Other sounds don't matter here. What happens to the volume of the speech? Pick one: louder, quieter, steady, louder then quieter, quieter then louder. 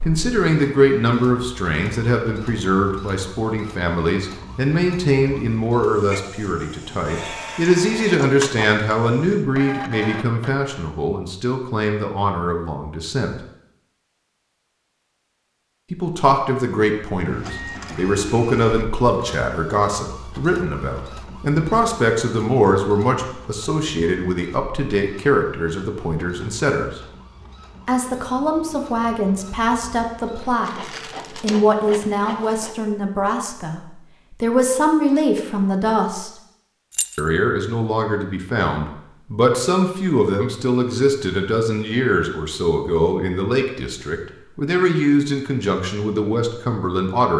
steady.